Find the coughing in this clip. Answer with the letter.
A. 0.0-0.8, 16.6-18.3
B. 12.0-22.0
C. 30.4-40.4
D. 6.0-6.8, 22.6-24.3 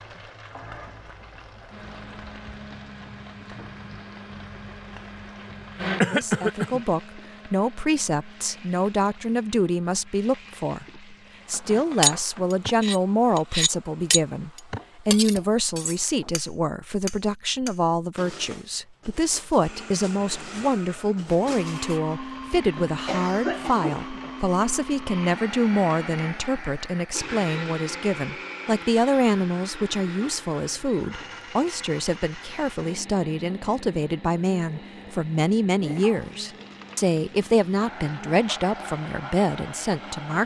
D.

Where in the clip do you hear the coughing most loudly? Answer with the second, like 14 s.
6 s.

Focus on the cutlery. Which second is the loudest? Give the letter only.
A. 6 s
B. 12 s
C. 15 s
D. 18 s
B.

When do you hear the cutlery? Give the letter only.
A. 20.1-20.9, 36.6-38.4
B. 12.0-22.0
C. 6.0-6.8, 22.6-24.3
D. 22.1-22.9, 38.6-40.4
B.